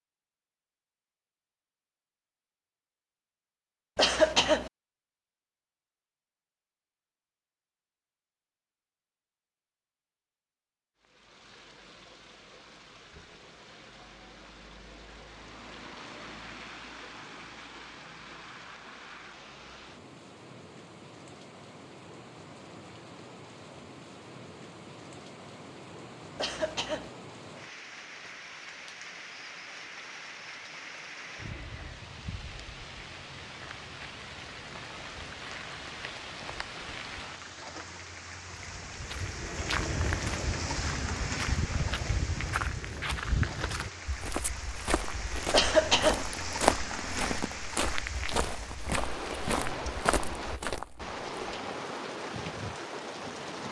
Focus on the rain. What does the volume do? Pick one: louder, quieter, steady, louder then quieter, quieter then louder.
louder.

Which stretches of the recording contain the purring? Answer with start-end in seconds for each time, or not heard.
not heard.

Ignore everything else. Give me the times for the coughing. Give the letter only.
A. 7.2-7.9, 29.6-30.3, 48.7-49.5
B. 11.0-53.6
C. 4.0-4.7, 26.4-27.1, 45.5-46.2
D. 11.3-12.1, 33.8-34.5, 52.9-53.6
C.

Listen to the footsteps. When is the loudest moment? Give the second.
47 s.